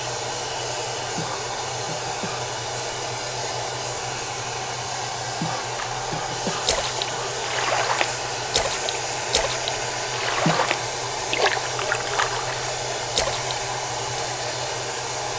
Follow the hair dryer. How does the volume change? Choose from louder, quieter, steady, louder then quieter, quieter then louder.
steady.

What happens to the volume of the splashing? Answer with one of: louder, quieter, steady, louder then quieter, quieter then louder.
steady.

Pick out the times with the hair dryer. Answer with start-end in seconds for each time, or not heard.
0.0-15.3.